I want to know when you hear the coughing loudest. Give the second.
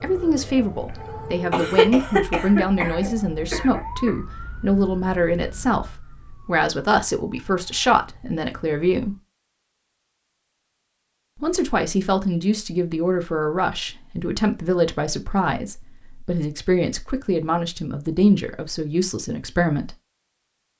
2 s.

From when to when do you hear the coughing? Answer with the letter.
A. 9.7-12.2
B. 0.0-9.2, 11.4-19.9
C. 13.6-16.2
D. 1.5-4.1
D.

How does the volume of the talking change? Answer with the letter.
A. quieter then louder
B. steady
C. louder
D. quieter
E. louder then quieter
B.